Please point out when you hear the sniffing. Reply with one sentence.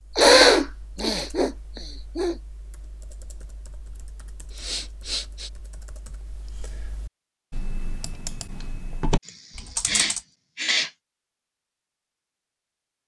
You can hear the sniffing from 0.1 to 2.4 s, from 4.5 to 5.5 s and from 9.2 to 10.9 s.